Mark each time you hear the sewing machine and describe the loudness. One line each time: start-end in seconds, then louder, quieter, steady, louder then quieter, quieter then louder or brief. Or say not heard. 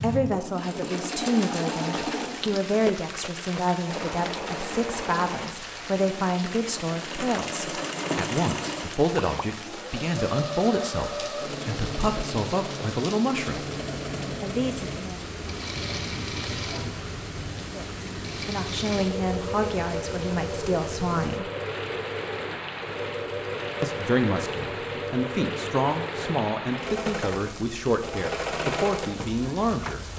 0.1-30.1 steady.